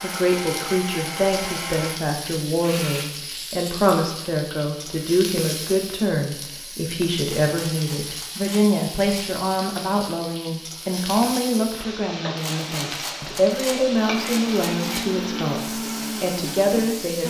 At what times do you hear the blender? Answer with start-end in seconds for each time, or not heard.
0.0-3.1, 13.9-17.2.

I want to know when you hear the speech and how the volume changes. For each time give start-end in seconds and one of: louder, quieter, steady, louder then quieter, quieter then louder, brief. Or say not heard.
0.0-17.2 steady.